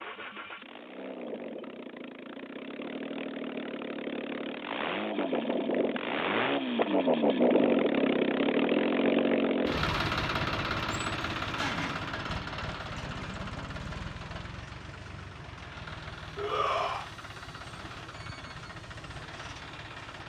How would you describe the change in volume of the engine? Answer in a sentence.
The loudness of the engine goes up, then down.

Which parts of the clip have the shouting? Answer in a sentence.
The shouting can be heard from 16.4 to 17.1 s.